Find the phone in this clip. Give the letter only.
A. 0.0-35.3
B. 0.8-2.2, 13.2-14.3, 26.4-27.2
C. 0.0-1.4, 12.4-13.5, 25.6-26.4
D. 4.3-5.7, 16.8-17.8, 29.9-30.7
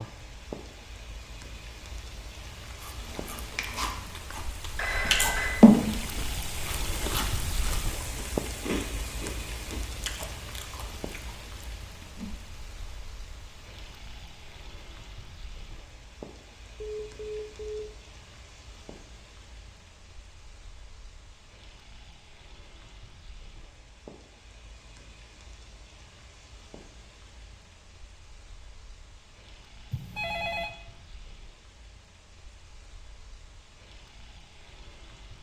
D.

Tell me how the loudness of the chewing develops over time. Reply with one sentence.
The loudness of the chewing goes up, then down.